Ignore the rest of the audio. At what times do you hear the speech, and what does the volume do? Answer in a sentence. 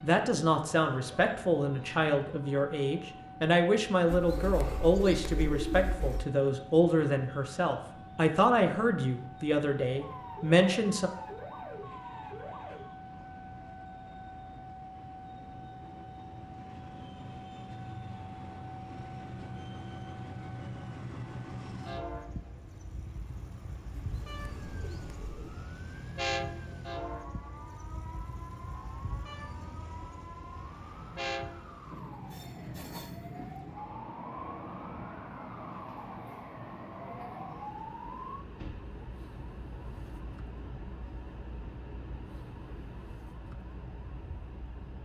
You can hear the speech from 0.0 to 11.1 s, at a steady volume.